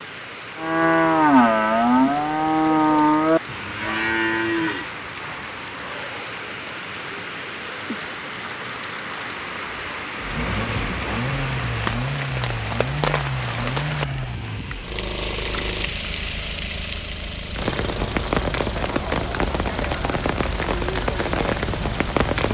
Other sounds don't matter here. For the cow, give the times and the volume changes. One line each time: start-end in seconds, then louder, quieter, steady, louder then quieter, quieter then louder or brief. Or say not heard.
0.6-6.2 quieter.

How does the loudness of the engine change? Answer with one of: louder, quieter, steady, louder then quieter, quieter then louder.
quieter.